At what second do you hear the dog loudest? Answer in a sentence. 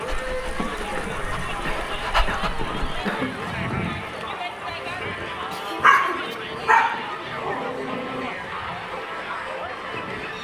The volume of the dog peaks at 6 seconds.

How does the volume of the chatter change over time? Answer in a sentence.
The loudness of the chatter stays about the same.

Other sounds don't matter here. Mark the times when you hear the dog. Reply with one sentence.
The dog can be heard from 0.1 to 3.0 s and from 5.8 to 8.3 s.